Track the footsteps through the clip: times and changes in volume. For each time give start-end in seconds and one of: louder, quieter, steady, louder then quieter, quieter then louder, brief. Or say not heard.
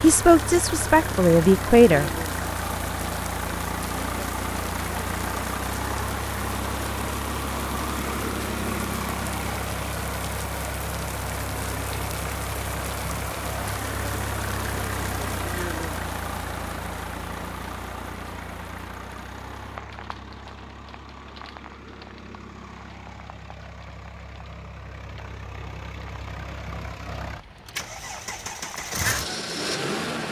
not heard.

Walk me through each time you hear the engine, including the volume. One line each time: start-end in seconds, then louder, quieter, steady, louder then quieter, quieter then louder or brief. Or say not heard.
0.0-30.2 quieter then louder.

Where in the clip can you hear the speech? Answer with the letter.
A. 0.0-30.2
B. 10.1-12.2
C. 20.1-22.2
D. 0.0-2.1
D.